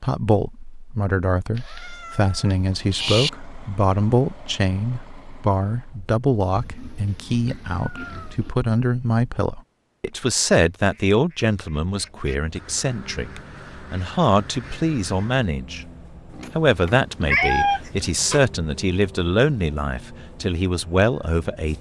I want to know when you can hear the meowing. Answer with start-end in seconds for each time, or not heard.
1.6-3.3, 7.8-8.3, 17.3-18.4.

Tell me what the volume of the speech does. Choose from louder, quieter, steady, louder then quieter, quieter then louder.
steady.